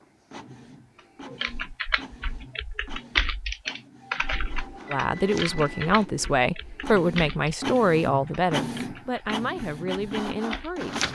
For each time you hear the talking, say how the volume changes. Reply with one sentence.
You can hear the talking from 4.9 to 11.1 s, getting quieter.